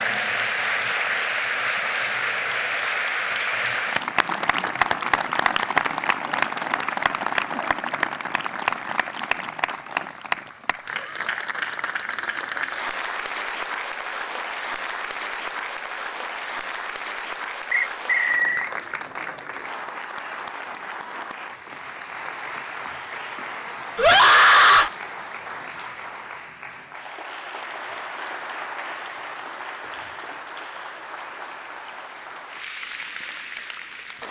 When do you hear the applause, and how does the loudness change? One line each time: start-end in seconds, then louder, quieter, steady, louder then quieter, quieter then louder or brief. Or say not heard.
0.0-34.2 quieter.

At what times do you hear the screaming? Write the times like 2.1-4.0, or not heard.
23.9-24.9.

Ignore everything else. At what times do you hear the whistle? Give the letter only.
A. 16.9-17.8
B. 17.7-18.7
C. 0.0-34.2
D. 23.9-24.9
B.